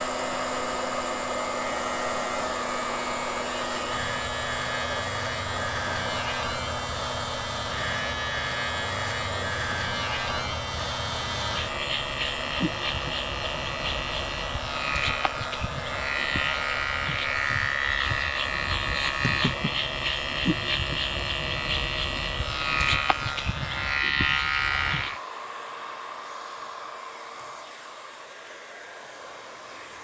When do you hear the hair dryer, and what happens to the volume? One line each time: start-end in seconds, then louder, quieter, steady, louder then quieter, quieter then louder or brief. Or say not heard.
0.0-29.9 quieter.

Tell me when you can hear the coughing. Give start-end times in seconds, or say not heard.
19.2-19.8.